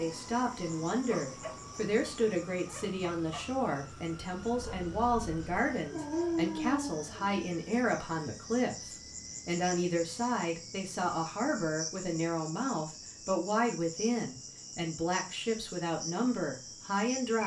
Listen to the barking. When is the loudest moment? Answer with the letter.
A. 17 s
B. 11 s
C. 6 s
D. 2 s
C.